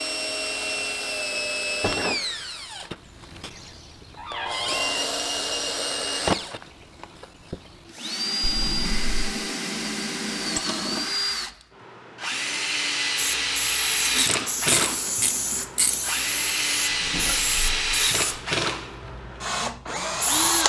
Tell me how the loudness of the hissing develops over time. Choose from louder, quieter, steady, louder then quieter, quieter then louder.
quieter.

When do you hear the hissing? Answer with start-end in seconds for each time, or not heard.
13.2-20.6.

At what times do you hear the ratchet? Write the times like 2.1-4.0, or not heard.
14.0-15.9.